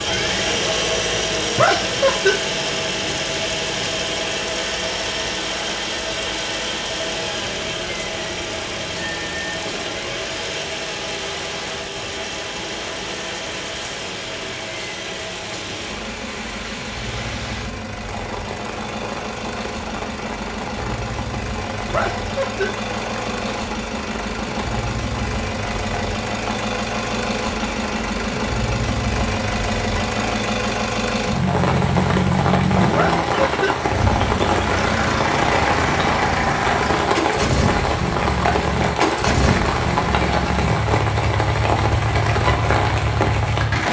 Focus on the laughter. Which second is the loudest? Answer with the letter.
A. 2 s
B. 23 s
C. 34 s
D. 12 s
A.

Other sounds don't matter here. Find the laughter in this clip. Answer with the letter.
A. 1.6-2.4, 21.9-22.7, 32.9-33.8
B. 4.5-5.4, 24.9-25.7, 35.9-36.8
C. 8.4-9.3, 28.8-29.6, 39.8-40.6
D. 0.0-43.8
A.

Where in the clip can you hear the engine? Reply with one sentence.
The engine can be heard from 0.0 to 43.8 s.